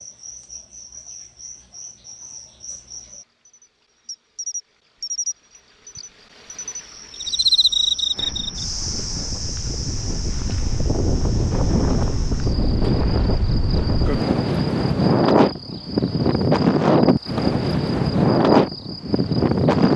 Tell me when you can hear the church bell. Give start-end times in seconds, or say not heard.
not heard.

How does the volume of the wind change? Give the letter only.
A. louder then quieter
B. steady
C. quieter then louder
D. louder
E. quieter
D.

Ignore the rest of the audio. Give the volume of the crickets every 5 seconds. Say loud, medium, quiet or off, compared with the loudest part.
quiet, loud, quiet, quiet.